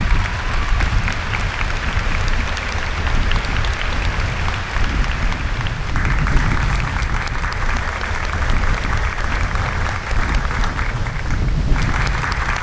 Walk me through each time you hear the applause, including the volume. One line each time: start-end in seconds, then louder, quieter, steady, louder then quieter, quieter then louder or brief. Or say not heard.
0.0-12.5 steady.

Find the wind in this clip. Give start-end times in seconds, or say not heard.
0.0-12.5.